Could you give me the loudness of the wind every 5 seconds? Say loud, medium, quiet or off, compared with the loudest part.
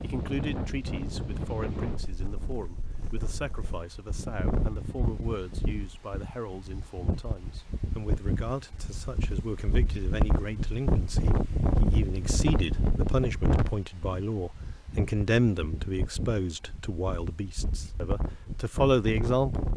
medium, medium, loud, medium.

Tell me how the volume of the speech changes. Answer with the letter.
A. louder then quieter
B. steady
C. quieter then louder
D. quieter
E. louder
E.